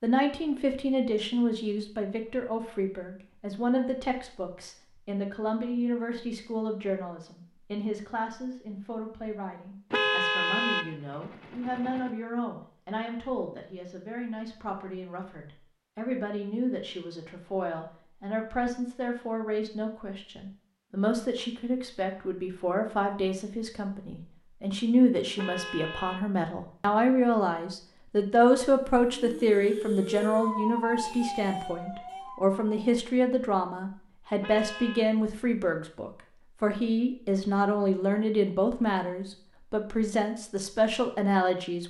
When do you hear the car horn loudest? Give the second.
10 s.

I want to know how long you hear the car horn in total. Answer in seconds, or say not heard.
4 s.